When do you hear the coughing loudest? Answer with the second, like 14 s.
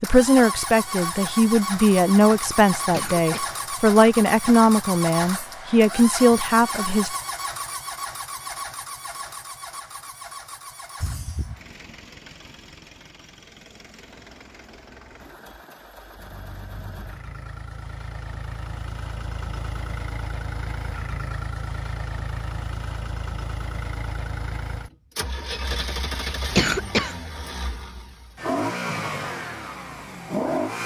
27 s.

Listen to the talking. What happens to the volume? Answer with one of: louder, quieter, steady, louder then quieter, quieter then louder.
steady.